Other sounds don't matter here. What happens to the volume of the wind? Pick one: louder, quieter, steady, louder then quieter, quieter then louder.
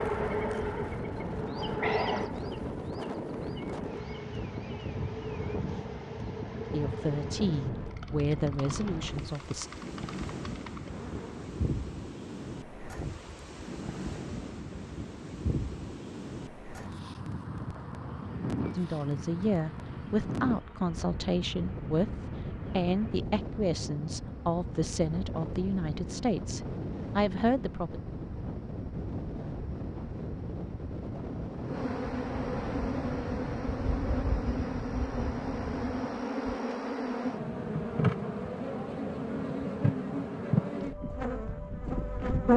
steady.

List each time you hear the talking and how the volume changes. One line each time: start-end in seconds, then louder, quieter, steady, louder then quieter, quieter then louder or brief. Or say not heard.
6.7-9.7 brief
18.8-28.0 steady.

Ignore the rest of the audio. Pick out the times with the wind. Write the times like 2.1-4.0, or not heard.
0.0-36.2.